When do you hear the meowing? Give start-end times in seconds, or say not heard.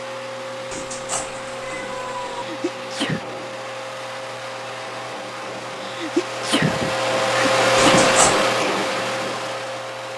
0.7-2.5, 7.8-8.4.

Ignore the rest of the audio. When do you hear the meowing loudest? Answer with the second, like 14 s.
8 s.